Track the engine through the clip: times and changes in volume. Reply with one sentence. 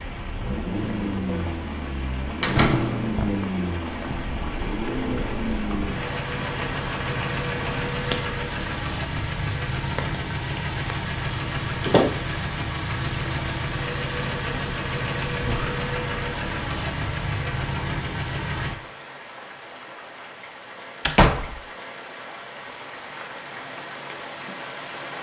The engine can be heard from 0.0 to 18.8 s, at a steady volume.